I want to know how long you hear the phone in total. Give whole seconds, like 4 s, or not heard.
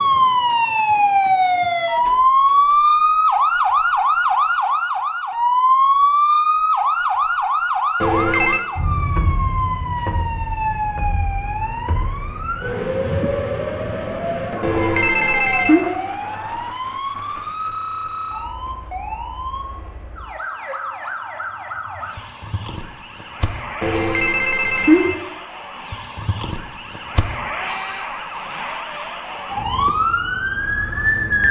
3 s.